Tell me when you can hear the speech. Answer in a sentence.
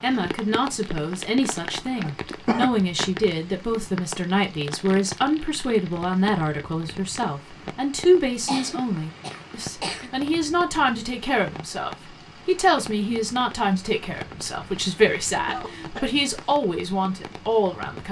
The speech can be heard from 0.0 to 18.0 s.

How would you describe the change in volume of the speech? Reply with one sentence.
The loudness of the speech stays about the same.